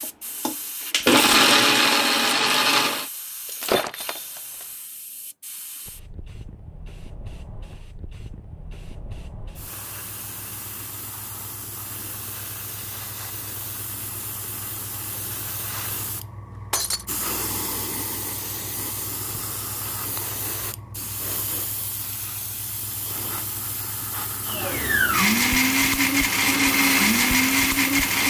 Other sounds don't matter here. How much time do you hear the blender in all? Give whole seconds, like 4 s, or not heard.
7 s.